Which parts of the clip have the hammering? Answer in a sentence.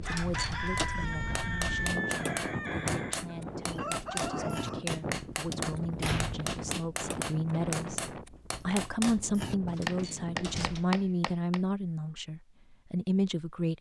The hammering can be heard from 0.7 to 11.6 s.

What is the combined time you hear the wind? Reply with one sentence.
The wind can be heard for 11 seconds in total.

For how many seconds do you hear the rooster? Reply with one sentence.
The rooster can be heard for 5 seconds in total.